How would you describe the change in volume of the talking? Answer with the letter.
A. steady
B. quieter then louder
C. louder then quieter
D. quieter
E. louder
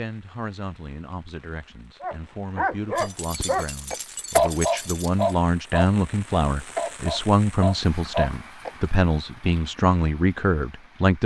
E.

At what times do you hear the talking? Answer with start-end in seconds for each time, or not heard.
0.0-11.2.